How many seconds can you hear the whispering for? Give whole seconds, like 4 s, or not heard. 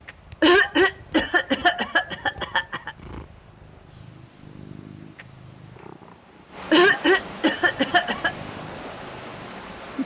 not heard.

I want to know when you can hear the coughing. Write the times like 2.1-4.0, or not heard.
0.4-3.0, 6.7-8.3.